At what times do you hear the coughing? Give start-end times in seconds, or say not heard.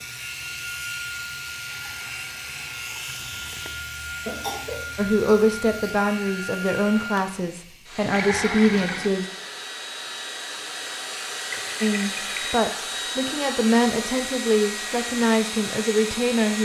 4.2-4.9.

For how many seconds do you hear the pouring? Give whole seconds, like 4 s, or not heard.
4 s.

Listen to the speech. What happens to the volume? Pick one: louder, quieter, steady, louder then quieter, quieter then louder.
steady.